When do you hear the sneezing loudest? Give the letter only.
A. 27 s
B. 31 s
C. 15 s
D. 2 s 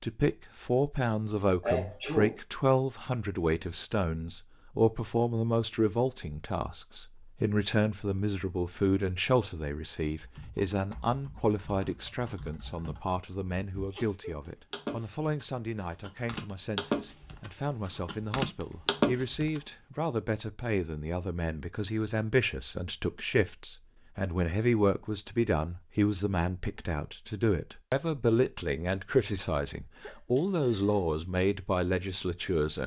D.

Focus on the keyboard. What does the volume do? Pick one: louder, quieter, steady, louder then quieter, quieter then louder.
louder.